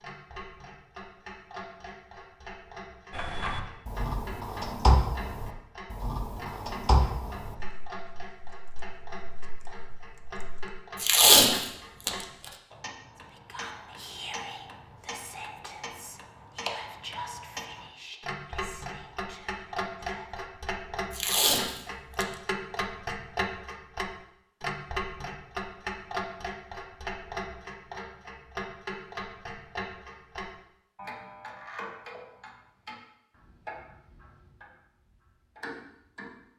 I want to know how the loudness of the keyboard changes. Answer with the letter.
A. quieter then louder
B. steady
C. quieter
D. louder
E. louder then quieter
E.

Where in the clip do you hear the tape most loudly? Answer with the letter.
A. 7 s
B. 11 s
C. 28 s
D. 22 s
B.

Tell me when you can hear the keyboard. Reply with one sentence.
You can hear the keyboard from 3.1 to 10.7 s.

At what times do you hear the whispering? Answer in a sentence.
You can hear the whispering from 13.2 to 20.4 s.